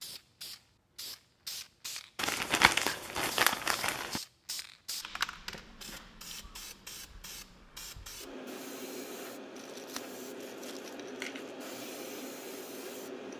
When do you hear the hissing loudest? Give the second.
5 s.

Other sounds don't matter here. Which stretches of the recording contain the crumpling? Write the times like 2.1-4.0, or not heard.
2.1-4.2, 9.6-11.6.